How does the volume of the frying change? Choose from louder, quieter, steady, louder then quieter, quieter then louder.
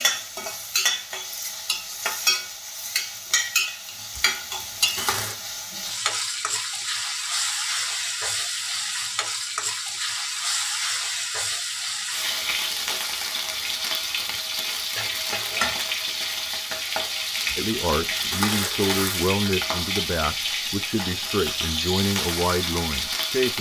steady.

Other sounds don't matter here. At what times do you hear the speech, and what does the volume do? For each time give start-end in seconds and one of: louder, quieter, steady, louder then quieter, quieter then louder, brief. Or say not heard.
17.6-23.5 steady.